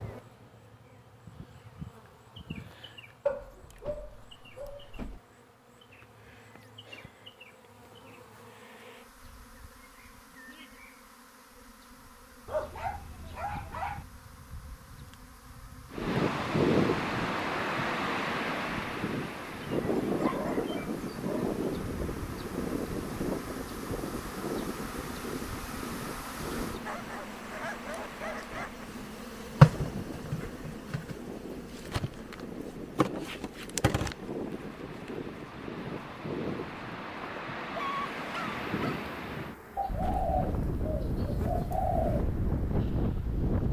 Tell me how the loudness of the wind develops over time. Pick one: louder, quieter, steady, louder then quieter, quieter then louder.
quieter then louder.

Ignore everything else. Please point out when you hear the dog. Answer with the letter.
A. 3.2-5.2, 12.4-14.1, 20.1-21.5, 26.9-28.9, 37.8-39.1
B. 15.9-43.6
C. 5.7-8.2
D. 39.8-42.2
A.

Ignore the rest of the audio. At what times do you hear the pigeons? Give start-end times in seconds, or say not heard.
39.8-42.2.